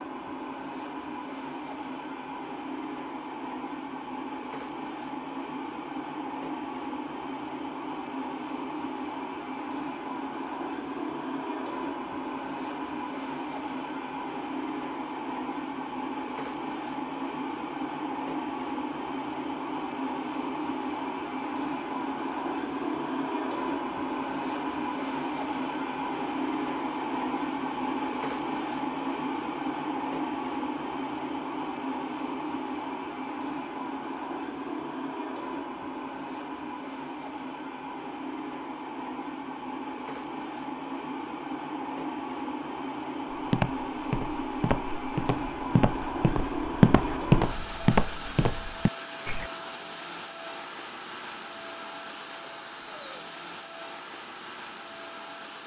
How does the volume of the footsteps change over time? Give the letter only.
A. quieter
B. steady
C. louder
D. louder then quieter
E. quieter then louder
D.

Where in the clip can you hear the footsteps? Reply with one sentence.
You can hear the footsteps from 43.3 to 49.5 s.